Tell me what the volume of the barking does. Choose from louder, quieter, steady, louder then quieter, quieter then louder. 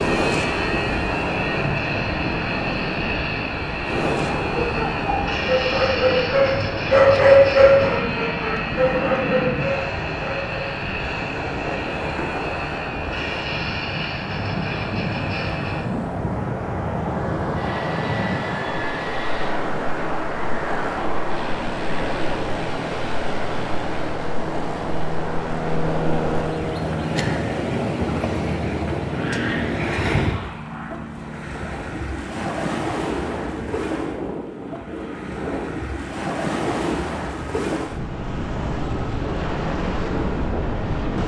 louder then quieter.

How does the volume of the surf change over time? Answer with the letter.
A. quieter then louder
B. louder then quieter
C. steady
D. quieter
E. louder
C.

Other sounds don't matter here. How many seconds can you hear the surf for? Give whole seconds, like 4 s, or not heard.
41 s.